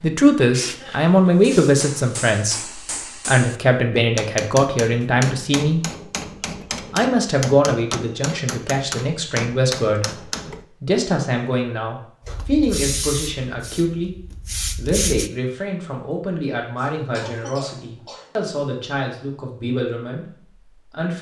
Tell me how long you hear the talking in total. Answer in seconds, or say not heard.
20 s.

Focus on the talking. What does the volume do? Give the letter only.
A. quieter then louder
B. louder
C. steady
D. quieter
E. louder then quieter
D.